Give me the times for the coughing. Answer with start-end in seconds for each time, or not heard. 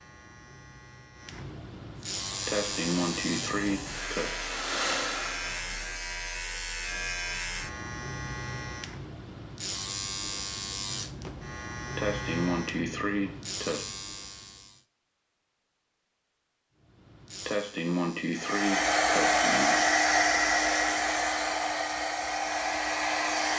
2.5-4.3, 11.9-13.8, 17.4-19.8.